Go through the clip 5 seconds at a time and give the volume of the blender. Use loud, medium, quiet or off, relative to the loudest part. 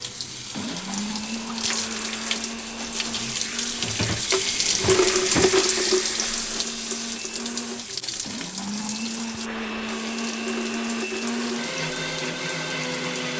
medium, medium, loud.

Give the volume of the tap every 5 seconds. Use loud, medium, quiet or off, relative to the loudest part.
loud, loud, medium.